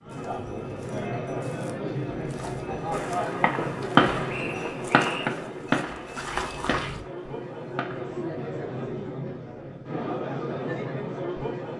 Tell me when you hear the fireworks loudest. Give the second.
4 s.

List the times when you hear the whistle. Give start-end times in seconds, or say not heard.
4.2-5.3.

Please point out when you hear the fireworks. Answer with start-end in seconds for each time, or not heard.
2.9-8.2.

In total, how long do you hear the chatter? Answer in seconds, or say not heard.
12 s.